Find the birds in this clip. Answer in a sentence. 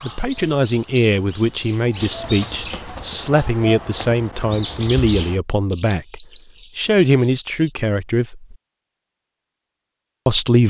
The birds can be heard from 0.0 to 7.8 s.